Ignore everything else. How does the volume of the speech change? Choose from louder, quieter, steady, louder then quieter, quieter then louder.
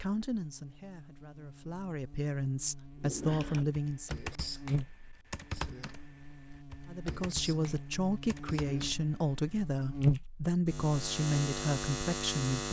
louder.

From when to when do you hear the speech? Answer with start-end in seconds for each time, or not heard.
0.0-4.2, 6.8-12.6.